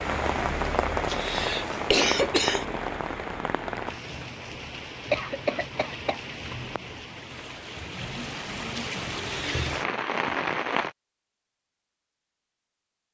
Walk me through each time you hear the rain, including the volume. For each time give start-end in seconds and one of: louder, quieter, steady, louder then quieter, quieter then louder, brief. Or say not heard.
0.0-10.9 quieter then louder.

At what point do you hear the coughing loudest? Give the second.
2 s.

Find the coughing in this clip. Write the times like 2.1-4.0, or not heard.
1.1-2.6, 5.1-6.2, 9.2-9.7.